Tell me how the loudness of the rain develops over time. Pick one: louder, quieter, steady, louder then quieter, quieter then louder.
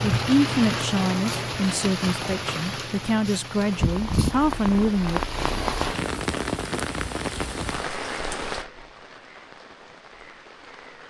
quieter.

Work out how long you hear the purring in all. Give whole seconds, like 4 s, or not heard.
6 s.